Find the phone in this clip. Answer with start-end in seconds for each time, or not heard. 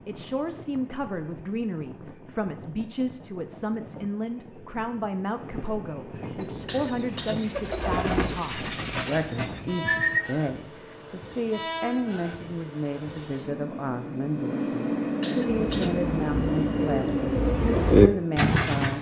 not heard.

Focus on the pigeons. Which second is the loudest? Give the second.
18 s.